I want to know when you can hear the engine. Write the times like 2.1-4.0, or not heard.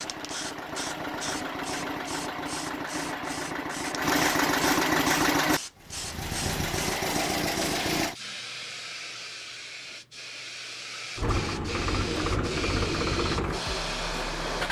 0.0-8.2, 11.2-14.6.